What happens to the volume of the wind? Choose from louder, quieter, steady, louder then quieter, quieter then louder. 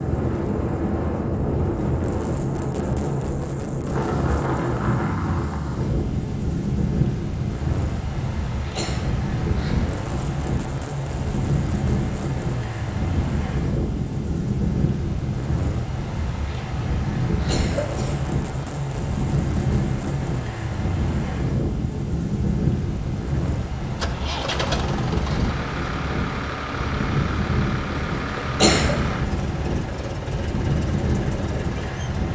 steady.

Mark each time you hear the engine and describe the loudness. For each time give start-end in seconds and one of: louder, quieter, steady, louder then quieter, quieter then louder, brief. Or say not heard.
0.0-32.2 steady.